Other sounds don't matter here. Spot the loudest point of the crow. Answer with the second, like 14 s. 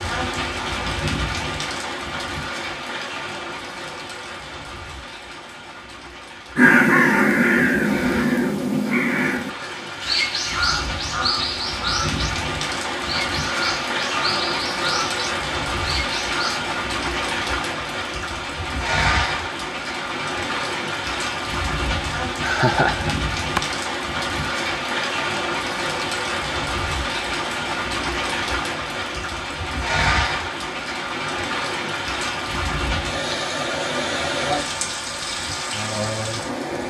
7 s.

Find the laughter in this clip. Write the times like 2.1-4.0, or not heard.
22.4-23.6.